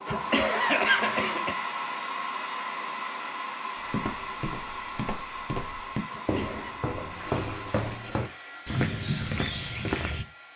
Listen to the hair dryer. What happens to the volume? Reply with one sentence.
The volume of the hair dryer goes down.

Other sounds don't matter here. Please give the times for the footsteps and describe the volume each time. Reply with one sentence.
The footsteps can be heard from 3.8 to 10.2 s, getting louder.